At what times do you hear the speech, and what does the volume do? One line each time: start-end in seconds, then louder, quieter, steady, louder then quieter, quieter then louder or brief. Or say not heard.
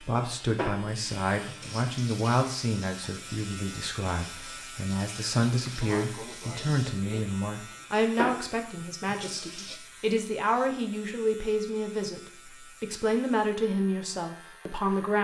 0.0-15.1 steady.